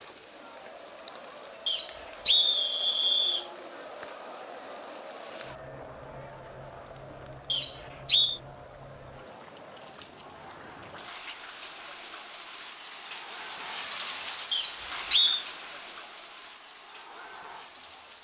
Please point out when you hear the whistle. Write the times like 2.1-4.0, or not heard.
1.6-3.5, 7.5-8.4, 14.5-15.4.